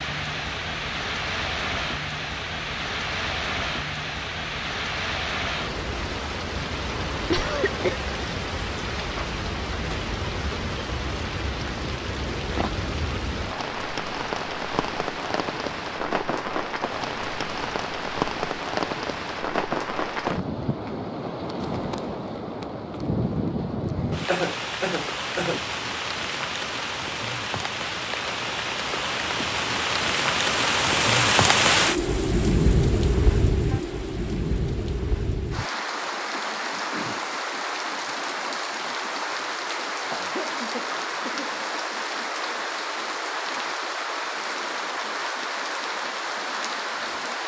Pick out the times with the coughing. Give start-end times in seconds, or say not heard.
7.3-8.0, 24.2-25.6, 40.1-41.5.